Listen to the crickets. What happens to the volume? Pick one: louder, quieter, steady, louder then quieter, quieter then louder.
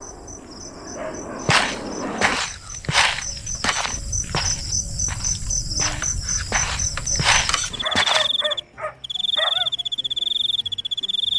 louder.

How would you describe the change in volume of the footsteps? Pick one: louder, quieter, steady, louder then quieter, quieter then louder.
quieter then louder.